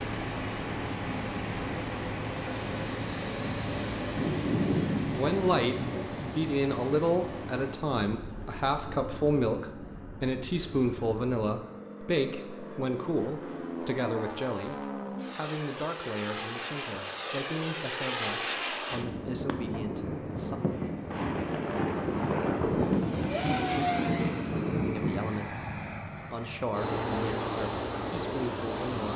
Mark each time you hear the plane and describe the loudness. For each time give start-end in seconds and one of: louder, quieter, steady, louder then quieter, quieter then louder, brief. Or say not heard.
0.0-29.1 quieter then louder.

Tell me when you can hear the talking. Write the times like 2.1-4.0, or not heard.
5.1-20.6, 24.9-29.1.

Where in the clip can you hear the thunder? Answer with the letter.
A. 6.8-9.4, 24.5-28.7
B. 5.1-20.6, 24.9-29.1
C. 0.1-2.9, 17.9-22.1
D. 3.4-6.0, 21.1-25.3
D.